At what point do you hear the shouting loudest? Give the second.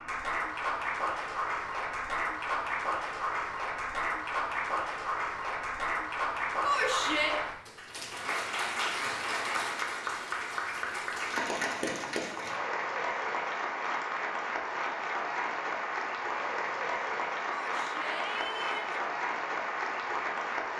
7 s.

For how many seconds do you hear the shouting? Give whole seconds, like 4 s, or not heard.
2 s.